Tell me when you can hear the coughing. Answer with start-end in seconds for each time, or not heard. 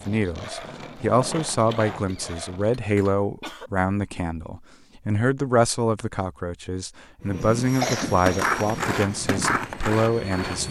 1.6-3.7, 7.4-8.6.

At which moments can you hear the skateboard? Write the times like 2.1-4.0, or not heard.
0.0-2.9, 7.7-10.6.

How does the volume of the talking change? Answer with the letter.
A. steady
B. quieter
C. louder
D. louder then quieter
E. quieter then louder
A.